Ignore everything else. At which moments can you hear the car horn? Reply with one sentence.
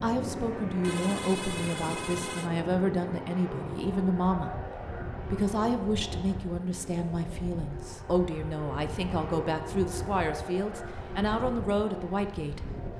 You can hear the car horn from 0.8 to 2.5 s.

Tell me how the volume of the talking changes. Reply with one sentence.
The loudness of the talking stays about the same.